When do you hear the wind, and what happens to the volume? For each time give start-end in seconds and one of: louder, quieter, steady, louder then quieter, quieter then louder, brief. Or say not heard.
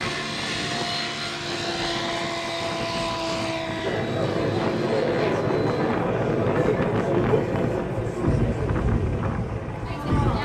0.0-10.4 louder.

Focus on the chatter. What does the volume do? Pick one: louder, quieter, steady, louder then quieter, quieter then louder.
quieter.